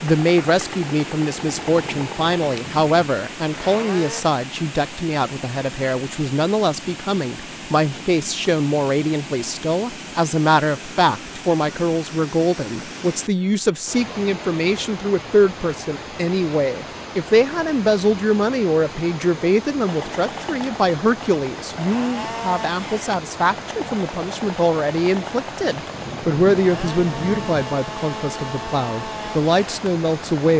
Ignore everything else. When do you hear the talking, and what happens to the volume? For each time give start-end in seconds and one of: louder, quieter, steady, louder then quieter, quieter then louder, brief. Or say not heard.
0.0-30.5 steady.